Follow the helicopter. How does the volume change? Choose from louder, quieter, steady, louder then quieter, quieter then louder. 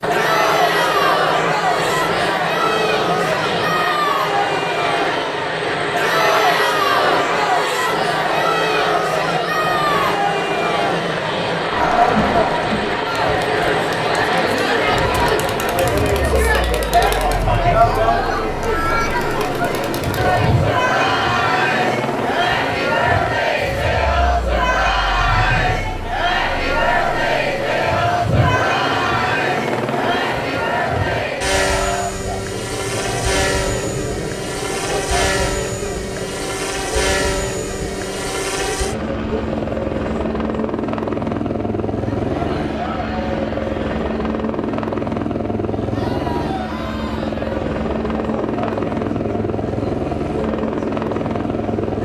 steady.